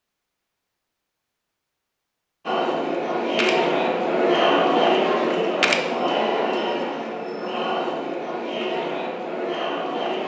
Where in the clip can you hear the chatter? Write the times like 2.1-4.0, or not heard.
2.5-10.2.